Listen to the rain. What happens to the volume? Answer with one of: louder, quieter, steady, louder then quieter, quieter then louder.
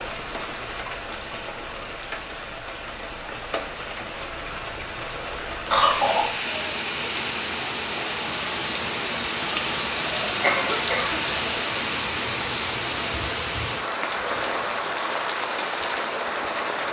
louder.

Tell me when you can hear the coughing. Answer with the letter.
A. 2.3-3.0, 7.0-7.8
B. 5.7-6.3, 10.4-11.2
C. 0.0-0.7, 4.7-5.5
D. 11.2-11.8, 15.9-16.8
B.